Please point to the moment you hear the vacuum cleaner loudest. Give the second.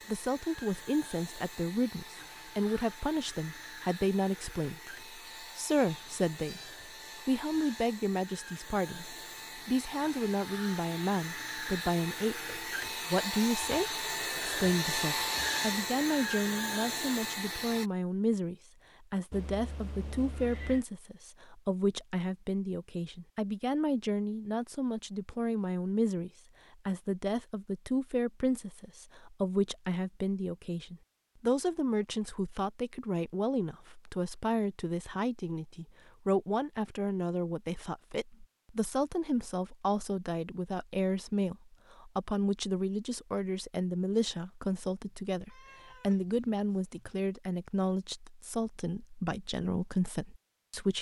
15 s.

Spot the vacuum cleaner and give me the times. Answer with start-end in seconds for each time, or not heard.
0.0-17.9.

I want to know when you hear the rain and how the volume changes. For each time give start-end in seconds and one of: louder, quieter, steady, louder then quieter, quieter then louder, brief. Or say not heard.
not heard.